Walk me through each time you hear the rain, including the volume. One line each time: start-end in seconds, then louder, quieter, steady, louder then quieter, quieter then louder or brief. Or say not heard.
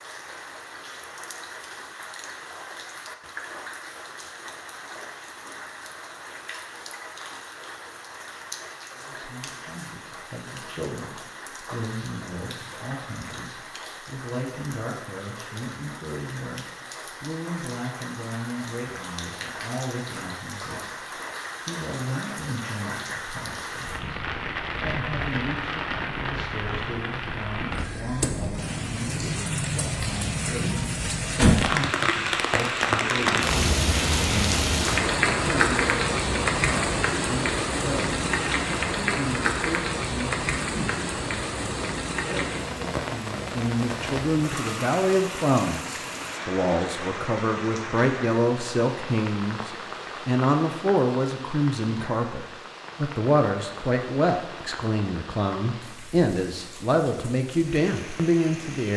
0.0-58.9 louder then quieter.